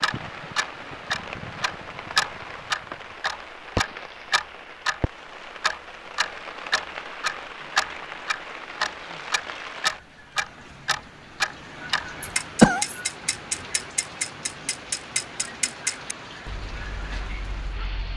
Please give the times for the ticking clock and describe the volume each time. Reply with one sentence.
The ticking clock can be heard from 0.0 to 18.1 s, getting quieter.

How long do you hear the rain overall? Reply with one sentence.
The rain can be heard for 18 seconds in total.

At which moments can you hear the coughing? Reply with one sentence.
You can hear the coughing from 12.2 to 13.0 s.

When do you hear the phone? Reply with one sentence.
The phone can't be heard in this clip.